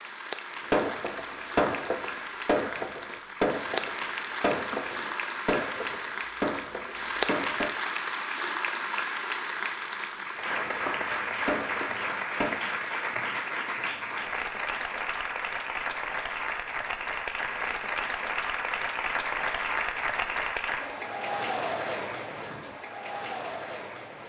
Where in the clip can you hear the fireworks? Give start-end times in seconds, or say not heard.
0.7-7.8, 10.5-12.7.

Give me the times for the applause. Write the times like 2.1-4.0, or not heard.
0.0-24.2.